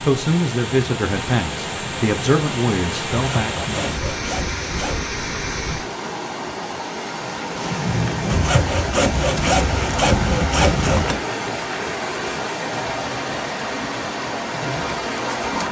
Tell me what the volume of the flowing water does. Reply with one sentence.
The volume of the flowing water stays about the same.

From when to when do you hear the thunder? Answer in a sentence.
The thunder can be heard from 7.5 to 11.1 s.